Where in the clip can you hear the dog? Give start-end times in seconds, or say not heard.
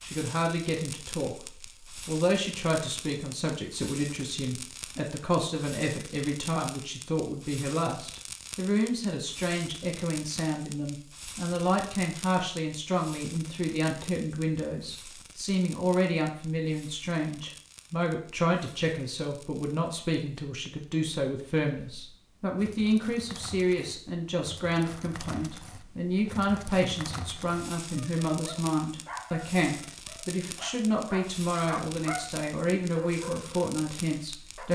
27.9-34.6.